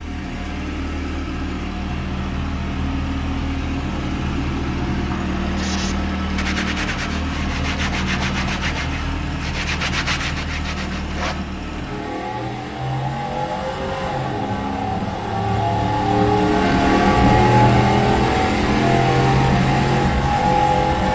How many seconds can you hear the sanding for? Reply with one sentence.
The sanding can be heard for 6 seconds in total.